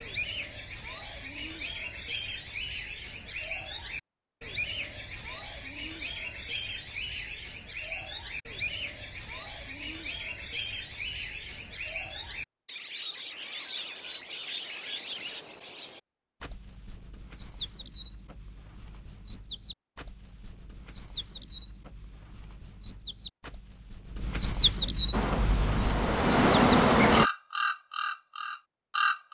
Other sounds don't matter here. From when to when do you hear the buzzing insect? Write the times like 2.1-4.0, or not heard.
25.1-27.3.